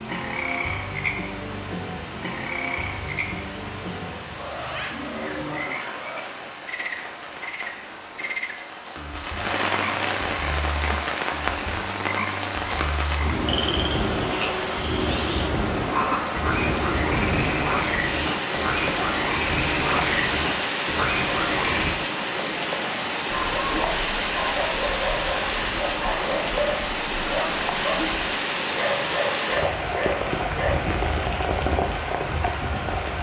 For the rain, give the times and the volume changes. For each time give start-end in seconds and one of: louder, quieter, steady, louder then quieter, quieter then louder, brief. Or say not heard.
0.0-33.1 louder.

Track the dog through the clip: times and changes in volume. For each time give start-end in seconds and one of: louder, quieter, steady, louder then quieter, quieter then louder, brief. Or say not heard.
23.2-30.8 steady.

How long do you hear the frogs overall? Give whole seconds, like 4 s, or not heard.
22 s.